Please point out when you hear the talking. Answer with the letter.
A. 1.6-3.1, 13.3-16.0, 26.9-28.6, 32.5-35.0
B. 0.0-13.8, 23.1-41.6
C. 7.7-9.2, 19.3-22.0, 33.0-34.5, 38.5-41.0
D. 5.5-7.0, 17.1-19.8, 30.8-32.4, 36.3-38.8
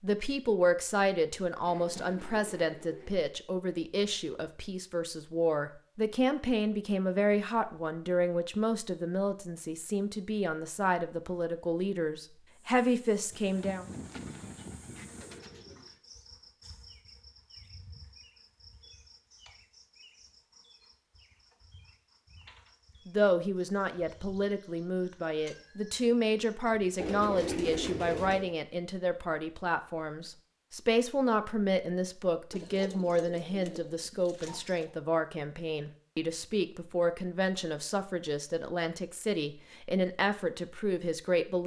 B.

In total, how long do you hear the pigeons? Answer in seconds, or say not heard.
8 s.